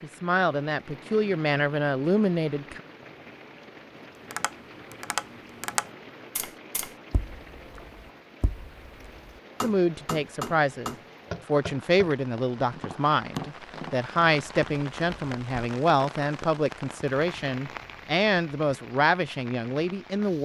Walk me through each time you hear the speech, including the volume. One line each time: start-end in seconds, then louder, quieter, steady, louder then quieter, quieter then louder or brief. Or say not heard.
0.0-2.8 brief
9.6-20.4 steady.